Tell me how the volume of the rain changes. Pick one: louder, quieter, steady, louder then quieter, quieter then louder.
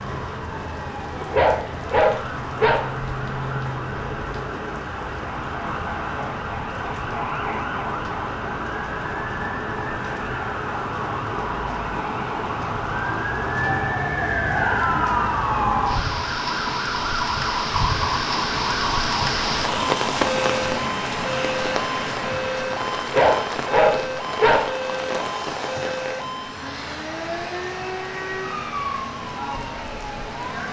louder then quieter.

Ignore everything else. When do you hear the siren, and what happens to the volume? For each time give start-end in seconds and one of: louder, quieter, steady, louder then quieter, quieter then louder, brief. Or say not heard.
0.0-30.6 louder then quieter.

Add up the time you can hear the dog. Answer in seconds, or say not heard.
3 s.